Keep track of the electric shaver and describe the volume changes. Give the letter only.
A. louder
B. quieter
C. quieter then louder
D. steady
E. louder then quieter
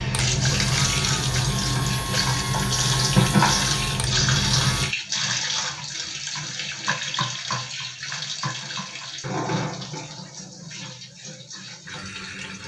D.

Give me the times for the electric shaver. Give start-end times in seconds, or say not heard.
0.0-5.0.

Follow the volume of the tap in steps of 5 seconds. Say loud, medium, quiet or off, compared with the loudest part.
loud, medium, quiet.